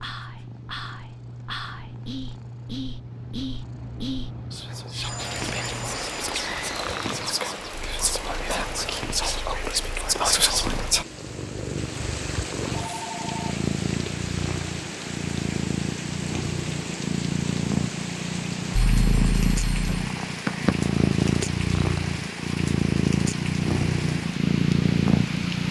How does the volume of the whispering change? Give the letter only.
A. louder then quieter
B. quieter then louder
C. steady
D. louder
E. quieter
D.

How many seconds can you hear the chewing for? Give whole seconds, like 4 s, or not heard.
not heard.